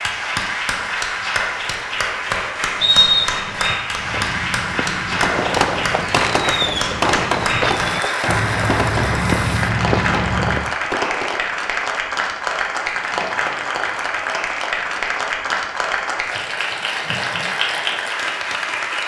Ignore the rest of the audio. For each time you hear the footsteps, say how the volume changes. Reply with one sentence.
You can hear the footsteps from 3.9 to 10.8 s, getting louder.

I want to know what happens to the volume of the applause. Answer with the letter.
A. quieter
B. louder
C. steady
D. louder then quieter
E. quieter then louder
C.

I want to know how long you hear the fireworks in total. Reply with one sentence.
You can hear the fireworks for 6 seconds altogether.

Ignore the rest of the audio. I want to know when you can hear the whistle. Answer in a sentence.
The whistle can be heard from 2.8 to 3.8 s.